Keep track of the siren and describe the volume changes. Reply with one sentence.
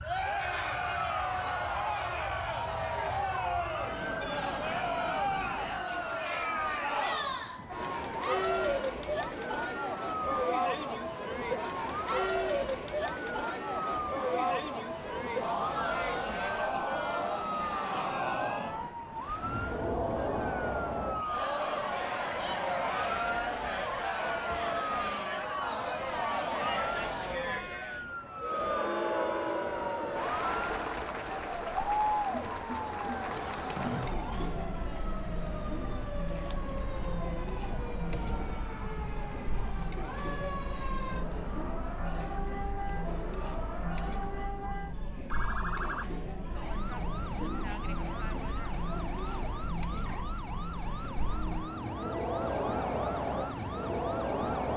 The volume of the siren stays about the same.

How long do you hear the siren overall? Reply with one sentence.
You can hear the siren for 55 seconds altogether.